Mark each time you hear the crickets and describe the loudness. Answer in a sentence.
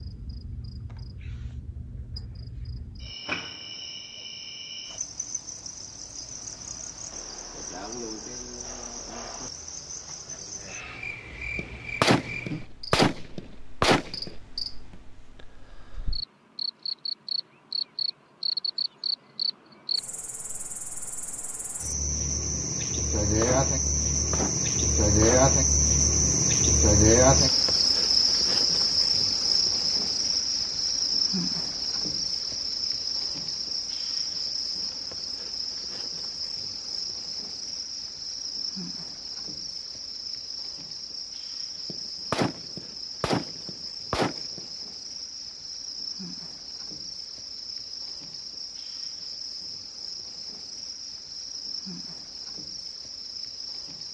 The crickets can be heard from 0.0 to 54.0 s, getting louder then quieter.